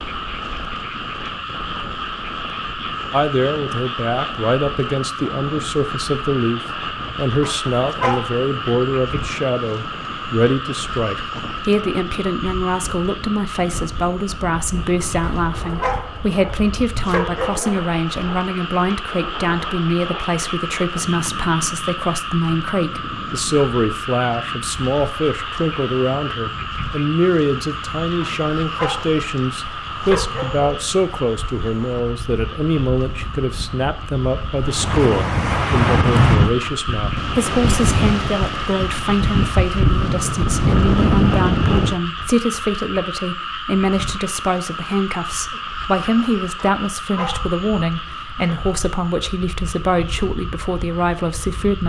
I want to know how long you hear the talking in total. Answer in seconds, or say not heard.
49 s.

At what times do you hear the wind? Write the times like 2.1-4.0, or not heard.
0.0-42.0.